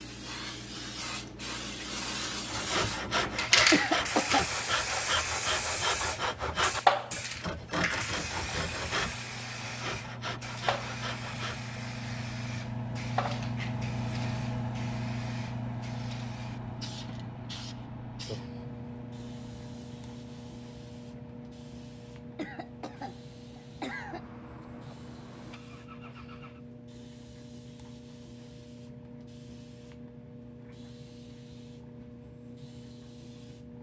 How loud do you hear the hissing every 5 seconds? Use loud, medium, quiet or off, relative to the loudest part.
loud, loud, medium, quiet, quiet, quiet, quiet.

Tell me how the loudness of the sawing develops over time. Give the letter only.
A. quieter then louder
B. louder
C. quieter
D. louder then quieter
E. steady
C.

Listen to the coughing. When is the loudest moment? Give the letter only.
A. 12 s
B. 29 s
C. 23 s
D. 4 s
D.